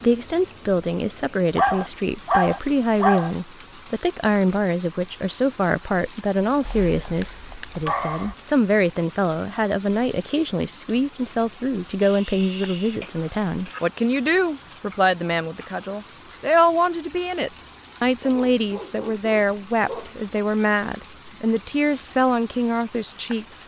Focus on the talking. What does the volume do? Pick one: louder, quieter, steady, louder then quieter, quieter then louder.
steady.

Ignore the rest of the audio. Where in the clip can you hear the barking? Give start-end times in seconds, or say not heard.
1.6-3.3, 6.7-8.3, 12.0-13.8, 18.2-20.1.